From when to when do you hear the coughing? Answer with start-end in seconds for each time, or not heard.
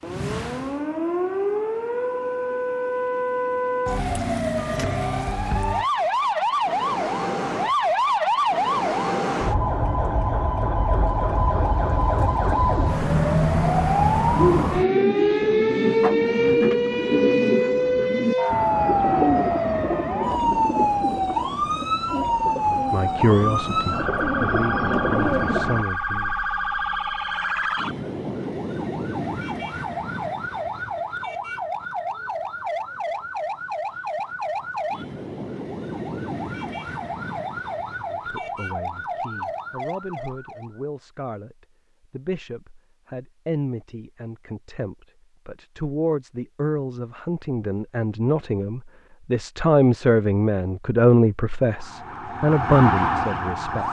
not heard.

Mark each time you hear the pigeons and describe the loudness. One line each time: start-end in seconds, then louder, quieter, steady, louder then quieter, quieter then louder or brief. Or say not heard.
14.3-25.9 quieter then louder.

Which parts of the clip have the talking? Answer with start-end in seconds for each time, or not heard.
22.6-26.3, 38.0-53.8.